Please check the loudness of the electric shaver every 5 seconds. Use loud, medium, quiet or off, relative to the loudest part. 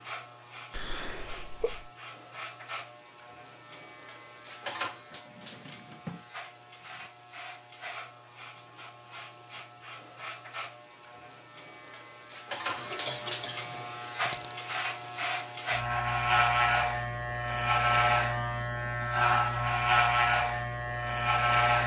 quiet, quiet, medium, loud, loud.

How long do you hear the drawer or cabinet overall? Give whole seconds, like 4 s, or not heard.
2 s.